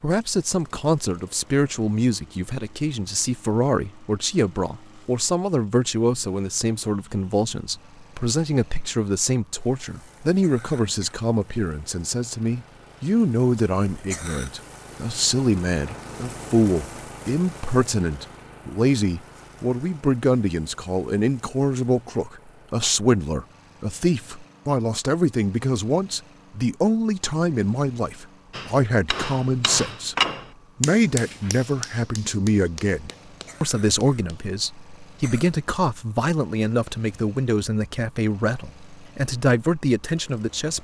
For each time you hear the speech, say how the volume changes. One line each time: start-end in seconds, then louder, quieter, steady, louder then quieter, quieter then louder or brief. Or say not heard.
0.0-30.1 steady
30.8-40.7 steady.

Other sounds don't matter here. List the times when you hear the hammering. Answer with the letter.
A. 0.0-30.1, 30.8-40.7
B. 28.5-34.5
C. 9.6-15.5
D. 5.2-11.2
B.